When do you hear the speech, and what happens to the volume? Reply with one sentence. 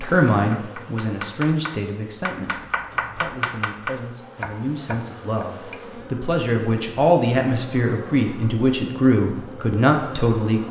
The speech can be heard from 0.0 to 10.6 s, getting quieter then louder.